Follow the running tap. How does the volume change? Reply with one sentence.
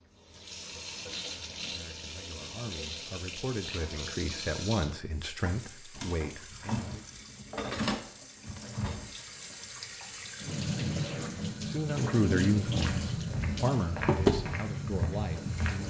The loudness of the running tap goes up.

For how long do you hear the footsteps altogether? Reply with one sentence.
The footsteps can be heard for 3 seconds in total.